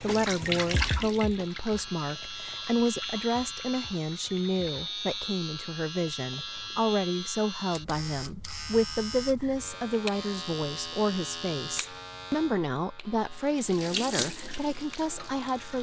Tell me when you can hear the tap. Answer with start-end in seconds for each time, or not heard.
0.0-5.0, 13.3-15.7.